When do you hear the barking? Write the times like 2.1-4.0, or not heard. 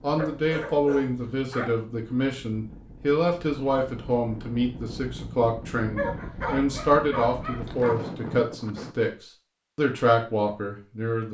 0.1-1.8, 6.0-8.0.